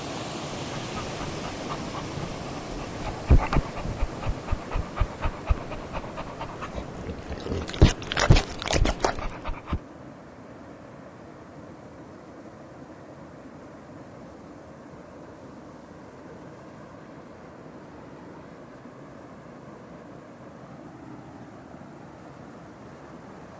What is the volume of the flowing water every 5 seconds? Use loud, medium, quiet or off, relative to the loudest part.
loud, medium, medium, medium, medium.